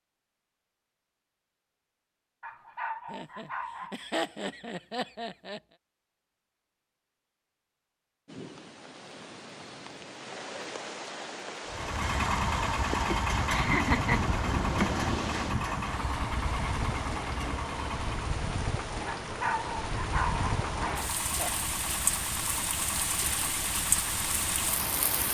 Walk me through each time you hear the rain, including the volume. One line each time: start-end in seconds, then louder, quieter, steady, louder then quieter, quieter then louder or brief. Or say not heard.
8.2-25.2 louder.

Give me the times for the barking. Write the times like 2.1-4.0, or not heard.
2.4-4.0, 19.1-21.1.